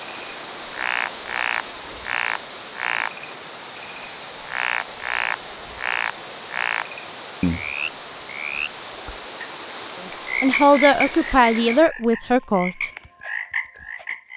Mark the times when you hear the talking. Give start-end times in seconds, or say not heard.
10.4-12.9.